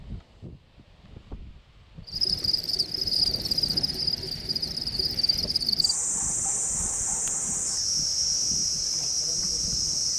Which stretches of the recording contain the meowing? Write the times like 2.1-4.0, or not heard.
not heard.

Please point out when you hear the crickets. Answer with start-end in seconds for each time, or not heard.
2.0-10.1.